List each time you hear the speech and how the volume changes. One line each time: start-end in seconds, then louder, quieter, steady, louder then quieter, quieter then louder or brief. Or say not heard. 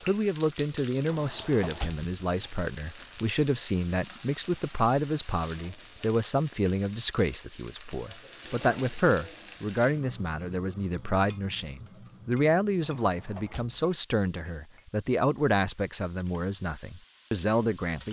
0.0-18.0 steady.